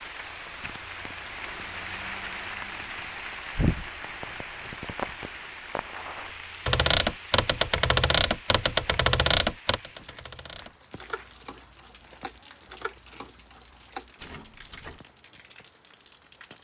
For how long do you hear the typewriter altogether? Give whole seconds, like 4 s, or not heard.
8 s.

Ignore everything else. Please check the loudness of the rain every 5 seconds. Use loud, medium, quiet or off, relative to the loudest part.
loud, medium, quiet, quiet.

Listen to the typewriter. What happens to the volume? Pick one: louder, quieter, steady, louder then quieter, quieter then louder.
quieter.